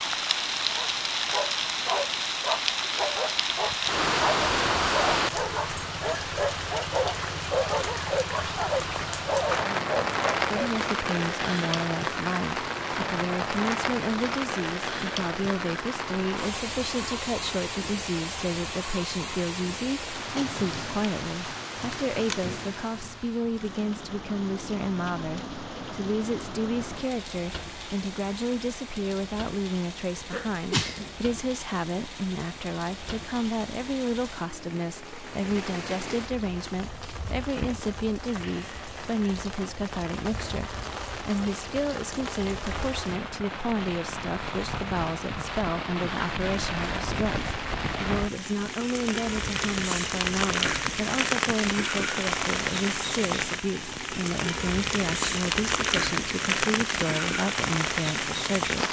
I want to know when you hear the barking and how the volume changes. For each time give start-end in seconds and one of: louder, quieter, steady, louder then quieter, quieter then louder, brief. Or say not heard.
0.7-10.7 steady.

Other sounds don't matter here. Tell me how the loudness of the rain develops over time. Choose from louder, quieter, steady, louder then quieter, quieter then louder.
quieter then louder.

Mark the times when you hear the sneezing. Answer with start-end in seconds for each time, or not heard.
30.3-31.1.